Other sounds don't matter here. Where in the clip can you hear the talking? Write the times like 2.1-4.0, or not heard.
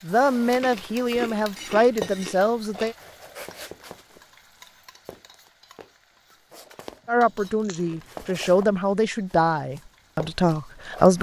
0.0-3.0, 7.0-11.1.